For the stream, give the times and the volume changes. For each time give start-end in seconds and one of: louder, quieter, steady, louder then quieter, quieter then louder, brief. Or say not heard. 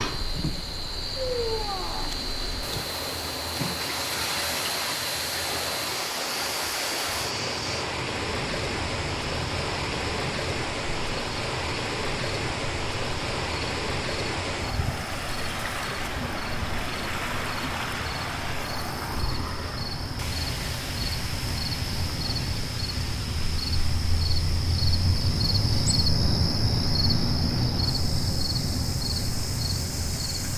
0.0-30.5 quieter.